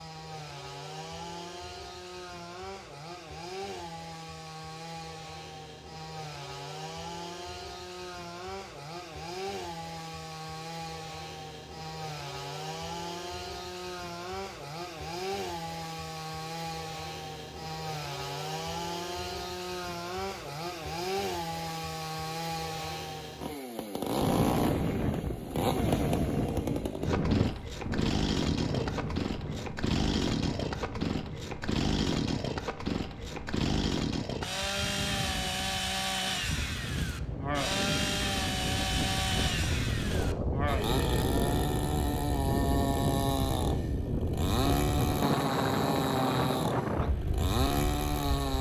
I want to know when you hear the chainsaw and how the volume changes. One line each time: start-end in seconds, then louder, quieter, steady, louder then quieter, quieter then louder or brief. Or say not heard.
0.0-48.5 louder.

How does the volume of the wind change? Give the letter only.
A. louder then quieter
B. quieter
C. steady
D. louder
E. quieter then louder
E.